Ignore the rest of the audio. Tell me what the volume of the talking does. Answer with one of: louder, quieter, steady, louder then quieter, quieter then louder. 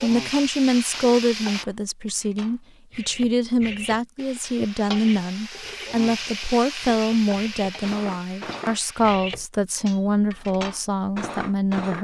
steady.